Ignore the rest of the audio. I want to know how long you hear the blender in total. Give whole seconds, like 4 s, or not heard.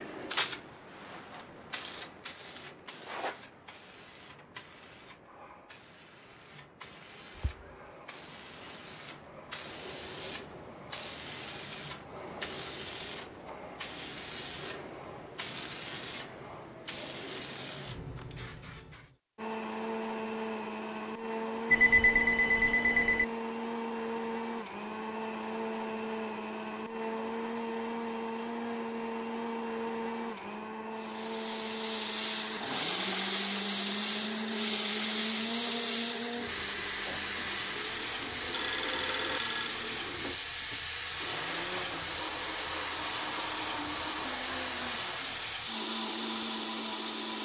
28 s.